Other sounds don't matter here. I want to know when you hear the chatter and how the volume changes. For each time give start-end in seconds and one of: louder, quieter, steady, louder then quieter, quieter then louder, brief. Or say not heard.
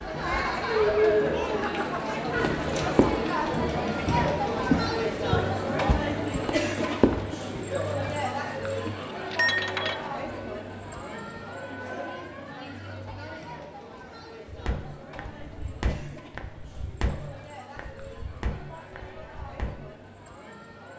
0.0-20.9 quieter.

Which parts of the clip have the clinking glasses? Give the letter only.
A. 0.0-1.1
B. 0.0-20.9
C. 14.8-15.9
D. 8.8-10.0
D.